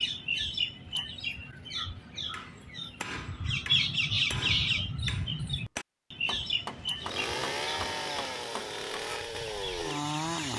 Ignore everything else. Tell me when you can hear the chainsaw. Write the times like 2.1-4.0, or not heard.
7.0-10.5.